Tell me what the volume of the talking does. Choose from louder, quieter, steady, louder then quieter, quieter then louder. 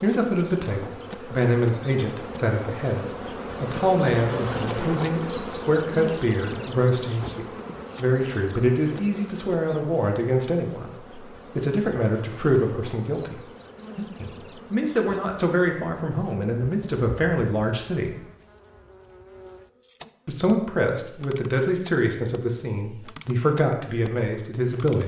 steady.